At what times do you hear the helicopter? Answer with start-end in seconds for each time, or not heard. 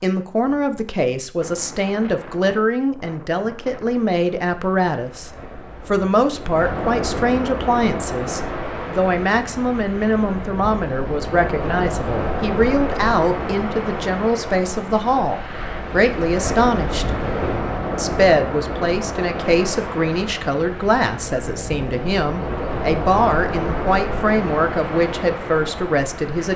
not heard.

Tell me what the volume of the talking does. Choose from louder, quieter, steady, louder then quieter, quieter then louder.
steady.